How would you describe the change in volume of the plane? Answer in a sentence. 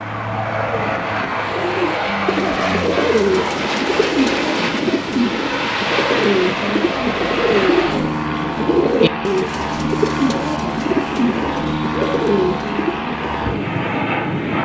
The volume of the plane stays about the same.